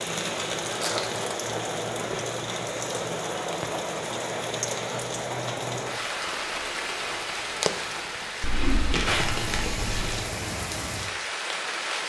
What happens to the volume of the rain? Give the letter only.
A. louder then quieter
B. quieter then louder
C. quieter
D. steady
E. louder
D.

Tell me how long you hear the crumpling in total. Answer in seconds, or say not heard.
3 s.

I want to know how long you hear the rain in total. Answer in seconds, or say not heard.
12 s.